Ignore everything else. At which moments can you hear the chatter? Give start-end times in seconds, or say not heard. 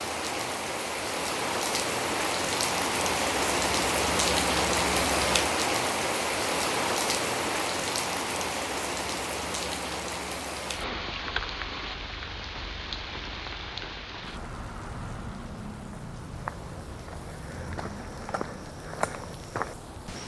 not heard.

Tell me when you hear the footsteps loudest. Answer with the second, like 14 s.
19 s.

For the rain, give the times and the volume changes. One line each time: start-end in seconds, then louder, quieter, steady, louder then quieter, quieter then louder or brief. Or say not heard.
0.0-20.2 quieter.